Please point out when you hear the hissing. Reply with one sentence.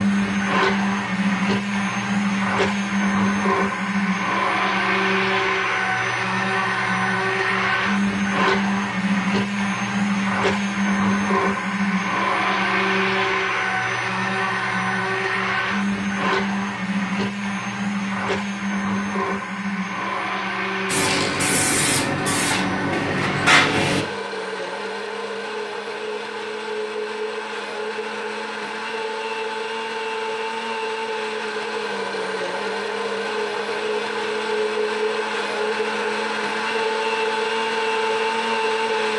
The hissing can be heard from 20.9 to 24.1 s.